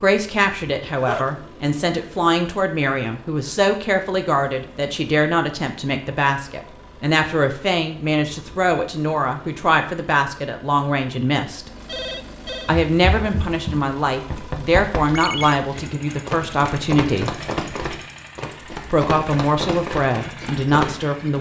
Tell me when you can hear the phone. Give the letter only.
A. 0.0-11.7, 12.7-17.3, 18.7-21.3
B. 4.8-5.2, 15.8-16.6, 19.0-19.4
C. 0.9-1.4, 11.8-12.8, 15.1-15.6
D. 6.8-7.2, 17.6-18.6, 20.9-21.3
C.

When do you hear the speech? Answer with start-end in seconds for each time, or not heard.
0.0-11.7, 12.7-17.3, 18.7-21.3.